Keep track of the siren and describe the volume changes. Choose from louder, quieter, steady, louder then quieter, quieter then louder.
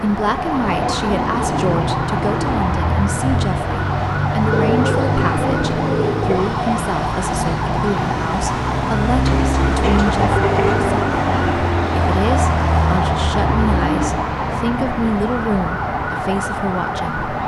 steady.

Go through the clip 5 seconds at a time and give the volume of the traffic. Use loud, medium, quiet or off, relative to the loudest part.
loud, loud, loud, medium.